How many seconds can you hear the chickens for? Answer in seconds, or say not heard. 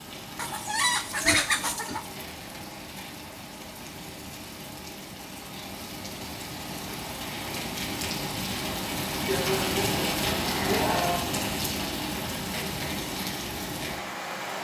2 s.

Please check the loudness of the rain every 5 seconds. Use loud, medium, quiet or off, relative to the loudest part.
medium, loud, loud.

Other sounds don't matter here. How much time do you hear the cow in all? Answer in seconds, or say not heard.
2 s.